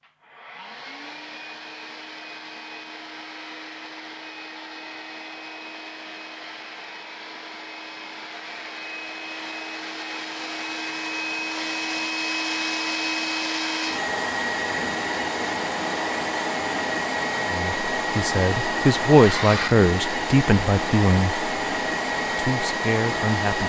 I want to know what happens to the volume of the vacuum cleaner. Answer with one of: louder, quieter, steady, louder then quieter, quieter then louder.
louder.